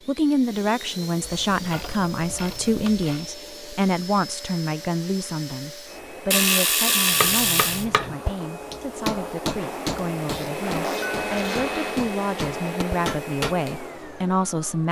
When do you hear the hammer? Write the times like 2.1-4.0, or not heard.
7.2-13.6.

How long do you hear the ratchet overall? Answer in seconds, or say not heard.
5 s.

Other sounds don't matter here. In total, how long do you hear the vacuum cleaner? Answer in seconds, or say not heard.
15 s.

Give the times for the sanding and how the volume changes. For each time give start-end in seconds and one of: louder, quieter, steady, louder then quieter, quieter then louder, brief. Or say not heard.
not heard.